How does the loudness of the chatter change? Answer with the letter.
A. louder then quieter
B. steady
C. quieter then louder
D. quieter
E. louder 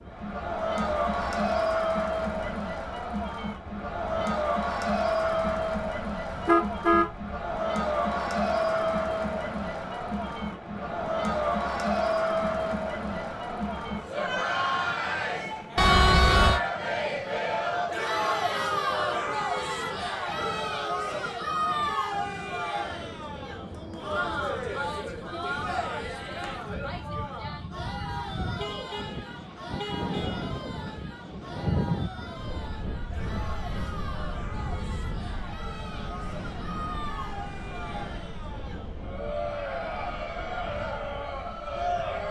D.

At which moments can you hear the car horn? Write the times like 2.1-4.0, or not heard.
6.3-7.1, 15.8-16.6, 28.6-30.5.